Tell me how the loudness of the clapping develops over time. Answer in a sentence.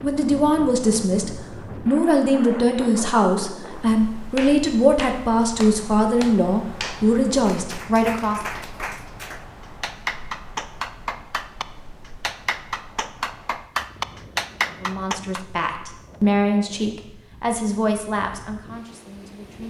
The loudness of the clapping goes up.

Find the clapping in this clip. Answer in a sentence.
You can hear the clapping from 4.3 to 15.4 s.